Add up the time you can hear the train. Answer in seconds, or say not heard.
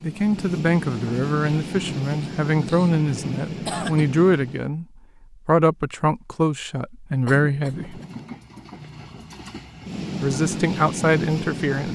9 s.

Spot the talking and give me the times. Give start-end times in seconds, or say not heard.
0.0-4.8, 5.5-8.0, 10.2-11.9.